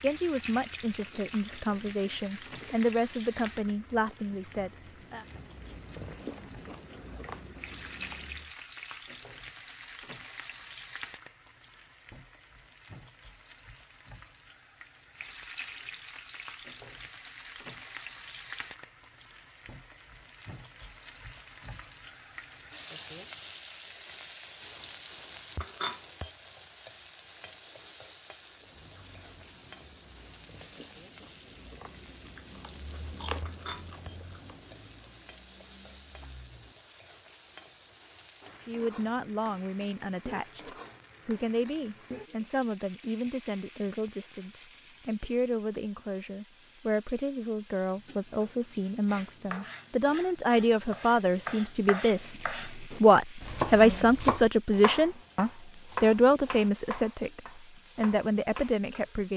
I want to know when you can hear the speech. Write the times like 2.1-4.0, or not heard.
0.0-5.2, 38.6-59.3.